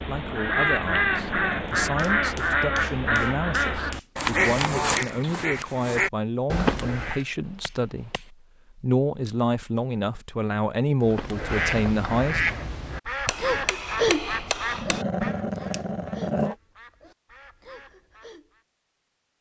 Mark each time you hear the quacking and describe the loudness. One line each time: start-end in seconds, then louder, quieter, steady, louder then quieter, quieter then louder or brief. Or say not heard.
0.0-7.2 steady
11.0-18.6 quieter.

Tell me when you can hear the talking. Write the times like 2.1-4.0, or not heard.
0.0-12.4.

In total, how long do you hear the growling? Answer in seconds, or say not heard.
3 s.